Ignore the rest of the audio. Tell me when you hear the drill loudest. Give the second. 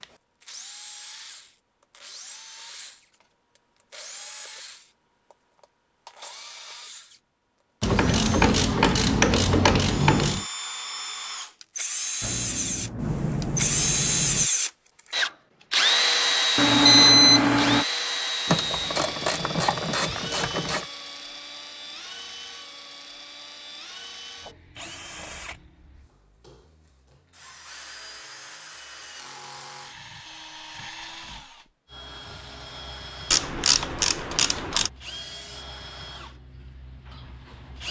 16 s.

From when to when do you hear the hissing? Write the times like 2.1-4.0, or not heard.
12.2-14.5.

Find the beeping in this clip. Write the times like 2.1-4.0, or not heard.
16.6-17.9.